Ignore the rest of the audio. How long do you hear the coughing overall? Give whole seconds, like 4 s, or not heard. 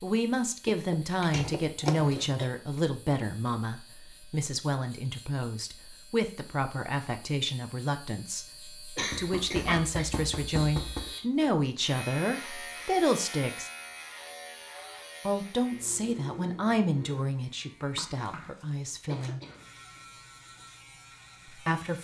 3 s.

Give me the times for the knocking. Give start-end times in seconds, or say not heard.
0.7-1.9, 9.1-11.1, 17.8-18.6.